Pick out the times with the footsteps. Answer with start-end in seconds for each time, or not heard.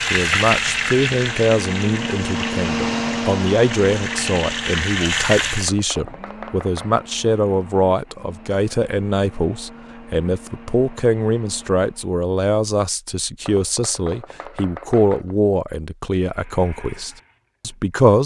not heard.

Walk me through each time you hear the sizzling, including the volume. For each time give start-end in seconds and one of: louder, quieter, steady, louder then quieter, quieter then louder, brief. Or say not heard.
0.0-5.7 quieter then louder.